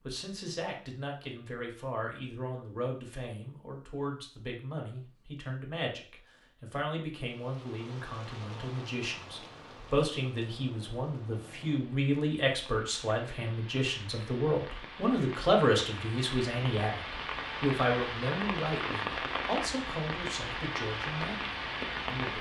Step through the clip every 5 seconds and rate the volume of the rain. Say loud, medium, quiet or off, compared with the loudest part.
off, quiet, quiet, loud, loud.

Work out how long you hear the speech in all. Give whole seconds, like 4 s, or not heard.
22 s.